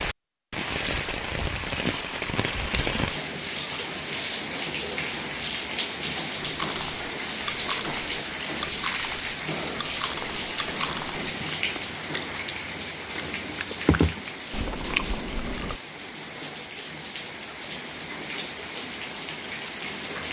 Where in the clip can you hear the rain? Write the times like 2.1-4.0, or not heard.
0.0-20.2.